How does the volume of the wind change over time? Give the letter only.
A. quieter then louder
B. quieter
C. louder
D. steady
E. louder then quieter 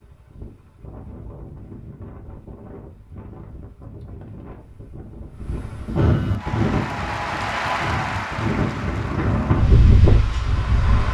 C.